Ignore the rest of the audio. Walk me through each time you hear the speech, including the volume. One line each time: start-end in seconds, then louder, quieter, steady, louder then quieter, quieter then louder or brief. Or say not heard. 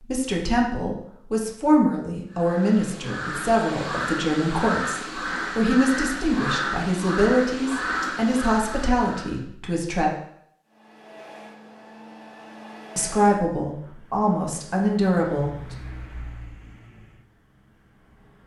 0.0-10.1 steady
12.9-15.8 brief.